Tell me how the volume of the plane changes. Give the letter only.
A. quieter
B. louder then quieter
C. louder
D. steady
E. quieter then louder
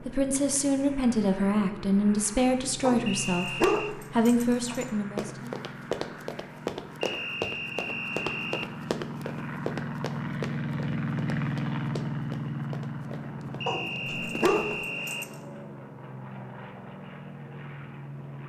B.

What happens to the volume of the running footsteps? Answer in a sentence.
The loudness of the running footsteps goes down.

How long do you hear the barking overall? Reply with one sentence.
The barking can be heard for 4 seconds in total.